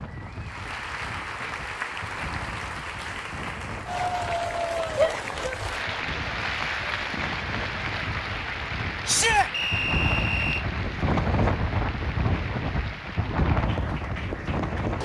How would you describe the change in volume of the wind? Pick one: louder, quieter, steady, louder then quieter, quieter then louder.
louder.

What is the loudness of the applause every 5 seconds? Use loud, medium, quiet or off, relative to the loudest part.
loud, loud, medium.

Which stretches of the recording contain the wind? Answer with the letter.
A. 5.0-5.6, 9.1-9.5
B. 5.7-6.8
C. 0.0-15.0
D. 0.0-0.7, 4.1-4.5
C.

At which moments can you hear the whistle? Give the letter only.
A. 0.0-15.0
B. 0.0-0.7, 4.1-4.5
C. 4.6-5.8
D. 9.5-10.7
D.